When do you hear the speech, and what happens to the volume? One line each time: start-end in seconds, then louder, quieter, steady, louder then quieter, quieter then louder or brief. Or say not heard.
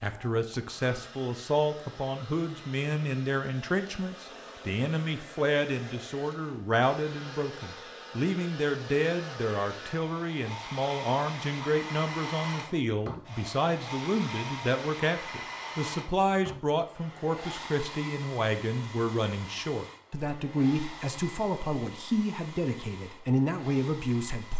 0.0-24.5 steady.